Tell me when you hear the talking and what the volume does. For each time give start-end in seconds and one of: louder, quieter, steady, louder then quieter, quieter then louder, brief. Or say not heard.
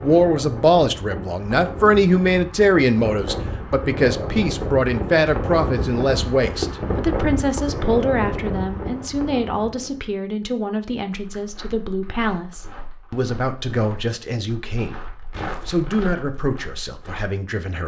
0.0-17.8 quieter.